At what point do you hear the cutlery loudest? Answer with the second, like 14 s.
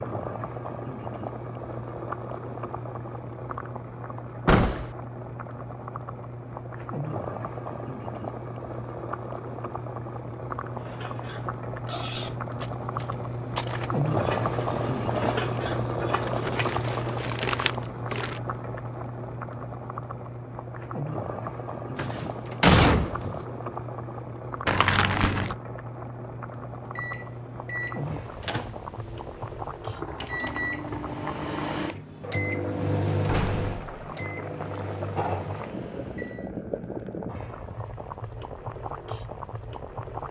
15 s.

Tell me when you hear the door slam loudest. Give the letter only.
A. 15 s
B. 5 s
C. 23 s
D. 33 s
C.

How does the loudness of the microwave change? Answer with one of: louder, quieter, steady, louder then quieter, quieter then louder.
louder then quieter.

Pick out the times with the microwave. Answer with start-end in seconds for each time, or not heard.
26.9-36.5.